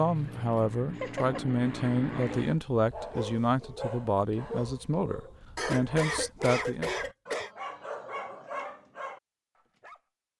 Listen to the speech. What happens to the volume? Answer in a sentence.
The volume of the speech stays about the same.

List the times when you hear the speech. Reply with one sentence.
You can hear the speech from 0.0 to 6.9 s.